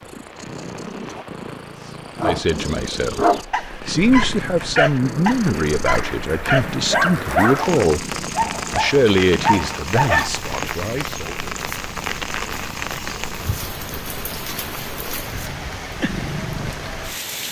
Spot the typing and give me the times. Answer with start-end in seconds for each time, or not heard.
not heard.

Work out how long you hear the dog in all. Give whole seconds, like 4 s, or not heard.
8 s.